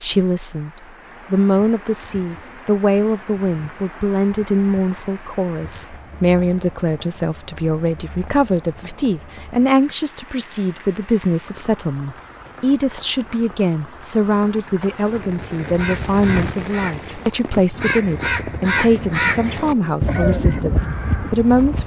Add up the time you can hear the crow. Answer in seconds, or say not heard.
6 s.